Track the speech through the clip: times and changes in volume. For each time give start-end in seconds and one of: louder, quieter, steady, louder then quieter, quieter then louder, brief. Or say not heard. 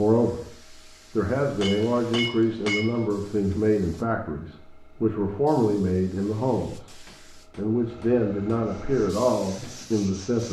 0.0-0.4 brief
1.1-10.4 steady.